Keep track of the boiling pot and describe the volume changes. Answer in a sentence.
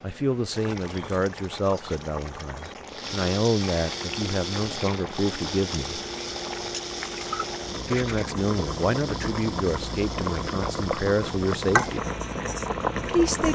The volume of the boiling pot goes up.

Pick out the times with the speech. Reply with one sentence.
The speech can be heard from 0.0 to 6.0 s, from 7.8 to 12.1 s and from 13.1 to 13.5 s.